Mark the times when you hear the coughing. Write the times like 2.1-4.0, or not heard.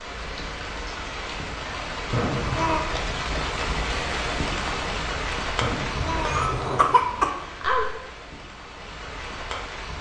2.1-2.8, 5.6-7.3.